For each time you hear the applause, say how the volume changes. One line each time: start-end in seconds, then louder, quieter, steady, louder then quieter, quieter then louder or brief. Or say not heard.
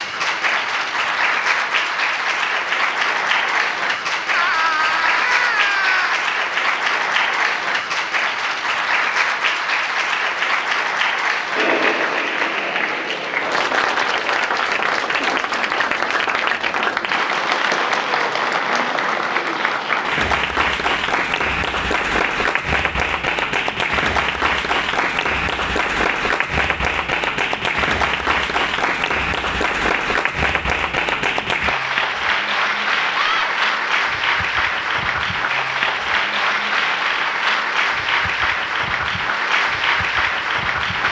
0.0-41.0 steady.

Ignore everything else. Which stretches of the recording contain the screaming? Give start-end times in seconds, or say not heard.
4.3-6.2, 33.1-33.6.